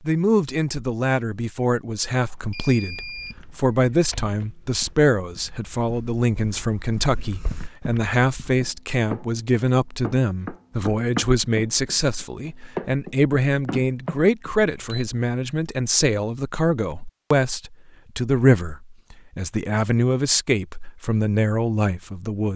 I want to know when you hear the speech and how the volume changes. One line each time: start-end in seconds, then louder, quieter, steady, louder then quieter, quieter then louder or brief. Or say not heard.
0.0-22.5 steady.